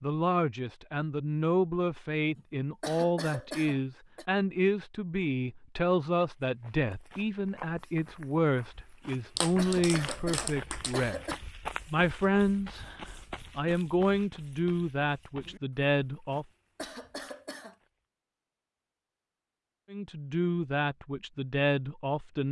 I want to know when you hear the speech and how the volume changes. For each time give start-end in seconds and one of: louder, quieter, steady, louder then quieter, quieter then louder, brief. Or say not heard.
0.0-16.4 steady
19.9-22.4 brief.